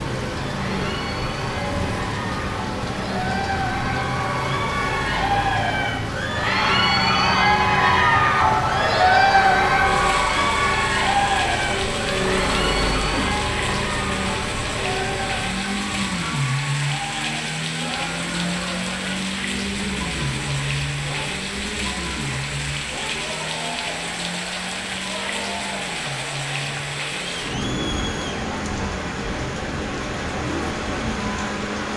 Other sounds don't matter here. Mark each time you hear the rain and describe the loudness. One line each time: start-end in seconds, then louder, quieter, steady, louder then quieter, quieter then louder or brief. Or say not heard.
0.0-31.9 steady.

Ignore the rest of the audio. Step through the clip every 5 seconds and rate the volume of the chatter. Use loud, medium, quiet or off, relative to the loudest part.
medium, loud, medium, quiet, quiet, quiet, quiet.